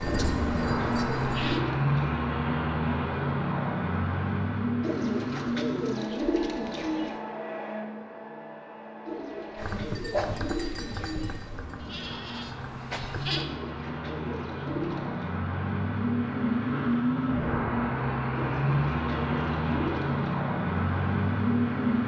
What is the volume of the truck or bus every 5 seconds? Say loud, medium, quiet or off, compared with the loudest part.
loud, medium, medium, loud, loud.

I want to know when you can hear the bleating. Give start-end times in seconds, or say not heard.
0.0-1.6, 9.6-13.4.